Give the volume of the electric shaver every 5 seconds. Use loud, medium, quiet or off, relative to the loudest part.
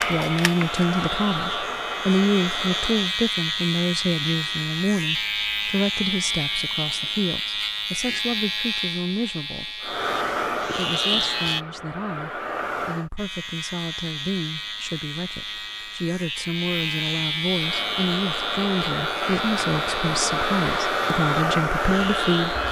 loud, loud, loud, loud, medium.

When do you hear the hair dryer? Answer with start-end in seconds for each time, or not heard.
0.0-3.1, 9.8-13.1, 17.5-22.6.